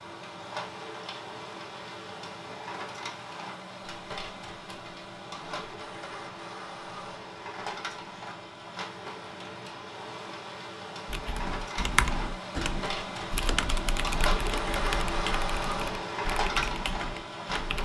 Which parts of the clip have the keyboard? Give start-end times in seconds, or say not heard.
11.1-17.8.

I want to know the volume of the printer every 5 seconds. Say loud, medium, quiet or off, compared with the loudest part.
medium, medium, loud, loud.